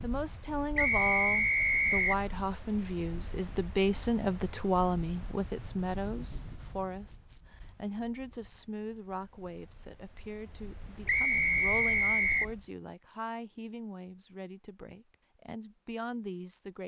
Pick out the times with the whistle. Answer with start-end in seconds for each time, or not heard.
0.8-2.2, 11.1-12.6.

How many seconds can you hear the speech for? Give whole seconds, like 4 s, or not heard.
17 s.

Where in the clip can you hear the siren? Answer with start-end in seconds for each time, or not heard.
not heard.